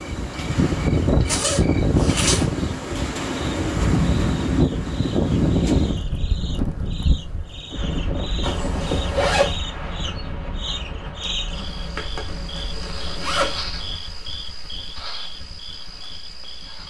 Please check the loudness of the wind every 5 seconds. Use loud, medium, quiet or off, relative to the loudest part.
loud, loud, quiet, off.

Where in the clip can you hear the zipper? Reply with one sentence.
The zipper can be heard from 1.2 to 2.5 s, from 8.4 to 9.6 s and from 11.9 to 13.7 s.